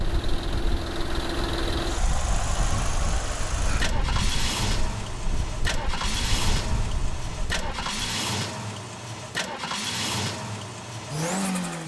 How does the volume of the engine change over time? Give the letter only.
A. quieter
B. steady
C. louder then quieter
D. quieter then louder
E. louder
B.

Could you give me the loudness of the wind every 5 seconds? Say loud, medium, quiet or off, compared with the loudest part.
loud, loud, off.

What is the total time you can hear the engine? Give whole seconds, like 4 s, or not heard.
12 s.